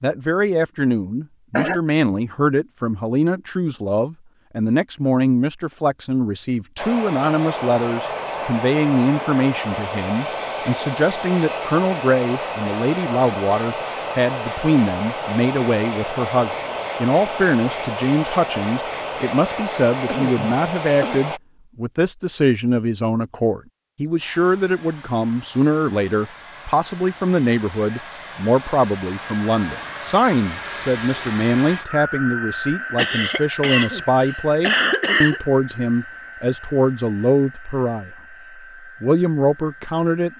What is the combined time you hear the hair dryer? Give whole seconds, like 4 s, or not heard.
31 s.